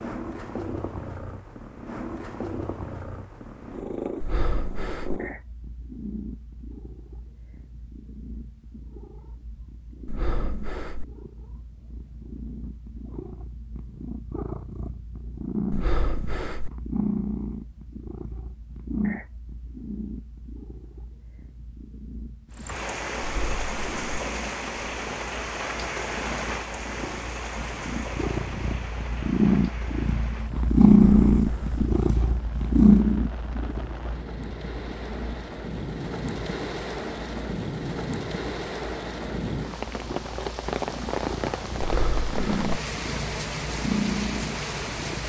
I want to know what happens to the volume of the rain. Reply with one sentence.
The loudness of the rain goes down, then up.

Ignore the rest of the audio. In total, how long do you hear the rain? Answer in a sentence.
You can hear the rain for 23 seconds altogether.